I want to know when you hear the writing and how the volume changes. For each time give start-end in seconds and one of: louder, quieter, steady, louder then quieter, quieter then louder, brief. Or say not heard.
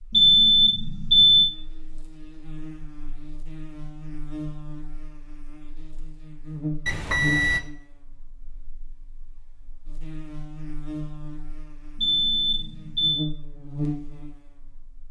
not heard.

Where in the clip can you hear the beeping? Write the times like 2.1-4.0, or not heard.
0.1-1.5, 6.8-7.6, 11.9-13.3.